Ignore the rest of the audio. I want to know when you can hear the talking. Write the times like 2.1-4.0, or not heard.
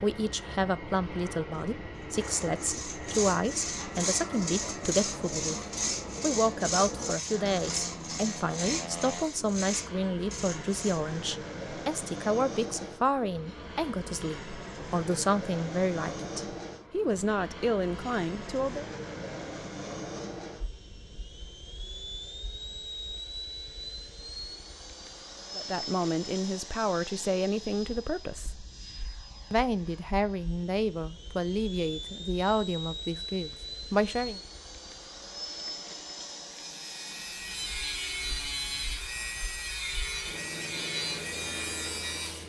0.0-5.6, 6.2-18.9, 25.6-28.5, 29.5-34.4.